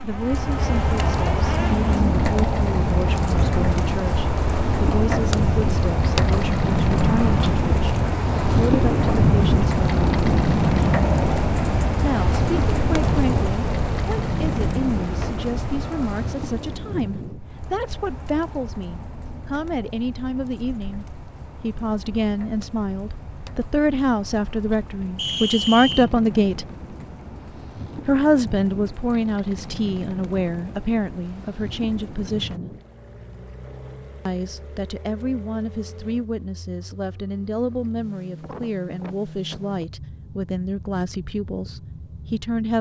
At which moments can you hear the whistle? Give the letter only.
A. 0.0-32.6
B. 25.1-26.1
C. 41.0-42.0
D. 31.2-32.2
B.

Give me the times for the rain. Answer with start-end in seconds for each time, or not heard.
0.0-32.6.